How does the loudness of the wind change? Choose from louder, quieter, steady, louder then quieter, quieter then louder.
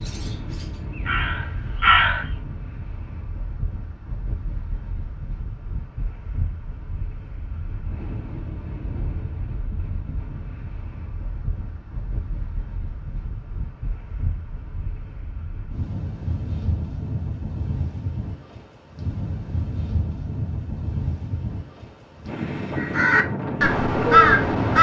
louder.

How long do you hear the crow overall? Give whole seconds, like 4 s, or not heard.
4 s.